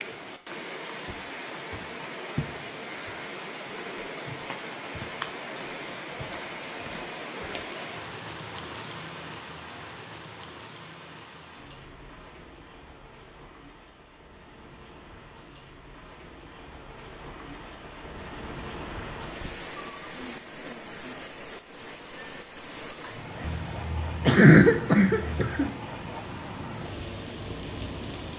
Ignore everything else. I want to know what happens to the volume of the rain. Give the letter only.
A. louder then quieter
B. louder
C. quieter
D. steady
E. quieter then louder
E.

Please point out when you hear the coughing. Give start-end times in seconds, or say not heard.
23.4-25.7.